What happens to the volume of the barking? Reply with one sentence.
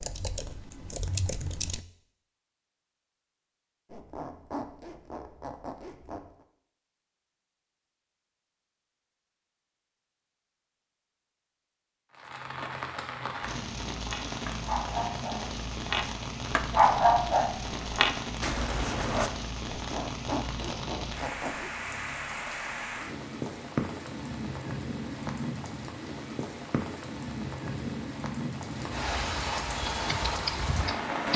The volume of the barking goes up, then down.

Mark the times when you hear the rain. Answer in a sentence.
You can hear the rain from 12.1 to 31.3 s.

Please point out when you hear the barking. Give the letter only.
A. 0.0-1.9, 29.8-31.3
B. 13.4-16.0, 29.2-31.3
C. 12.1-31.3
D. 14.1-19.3
D.